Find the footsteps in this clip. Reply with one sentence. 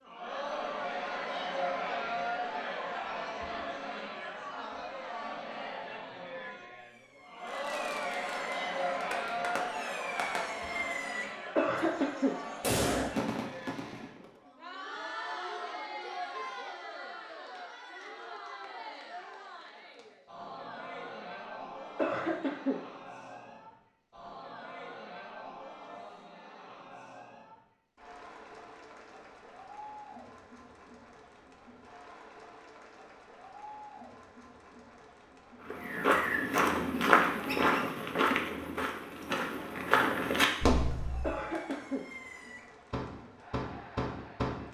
The footsteps can be heard from 35.6 to 41.4 s.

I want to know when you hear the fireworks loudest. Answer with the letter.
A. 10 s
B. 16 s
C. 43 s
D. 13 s
D.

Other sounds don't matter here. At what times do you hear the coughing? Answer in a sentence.
The coughing can be heard from 11.6 to 12.3 s, from 21.9 to 22.8 s and from 41.2 to 42.0 s.